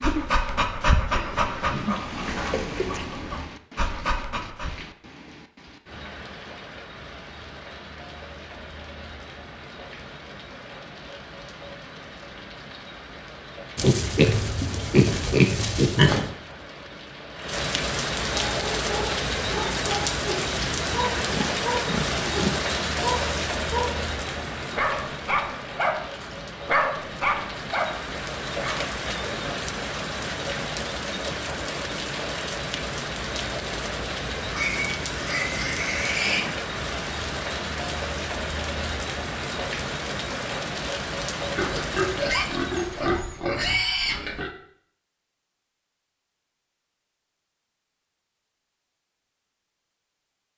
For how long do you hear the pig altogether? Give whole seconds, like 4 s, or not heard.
11 s.